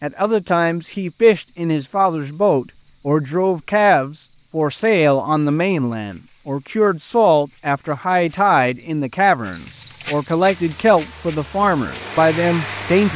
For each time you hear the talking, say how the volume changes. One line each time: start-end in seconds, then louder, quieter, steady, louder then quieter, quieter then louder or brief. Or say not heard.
0.0-13.1 steady.